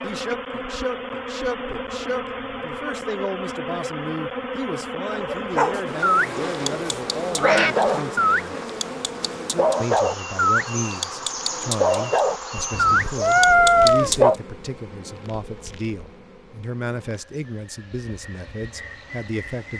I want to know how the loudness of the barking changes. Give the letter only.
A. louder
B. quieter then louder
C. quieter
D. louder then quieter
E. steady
E.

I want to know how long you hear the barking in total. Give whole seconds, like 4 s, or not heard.
9 s.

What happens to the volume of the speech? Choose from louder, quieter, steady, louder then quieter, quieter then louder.
steady.